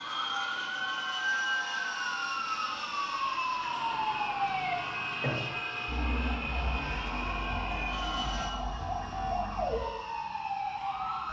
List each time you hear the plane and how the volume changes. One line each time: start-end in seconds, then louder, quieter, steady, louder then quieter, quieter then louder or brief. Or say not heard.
0.0-11.2 quieter.